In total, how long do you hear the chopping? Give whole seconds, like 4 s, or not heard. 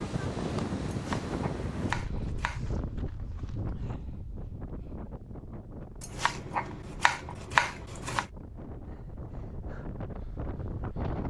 4 s.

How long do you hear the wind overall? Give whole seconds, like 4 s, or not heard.
11 s.